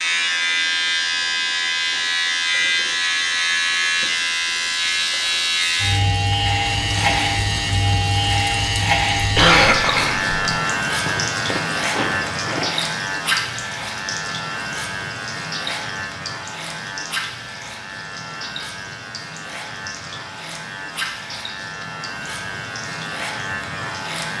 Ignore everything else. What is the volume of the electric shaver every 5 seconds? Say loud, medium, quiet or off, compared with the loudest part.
loud, loud, loud, medium, medium.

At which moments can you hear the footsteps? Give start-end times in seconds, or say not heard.
11.1-12.7.